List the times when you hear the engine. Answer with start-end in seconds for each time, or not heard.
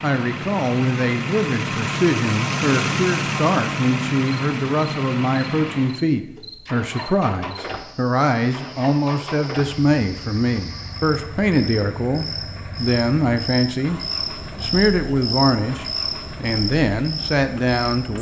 0.0-18.1.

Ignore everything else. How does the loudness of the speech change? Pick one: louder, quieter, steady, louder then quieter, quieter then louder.
steady.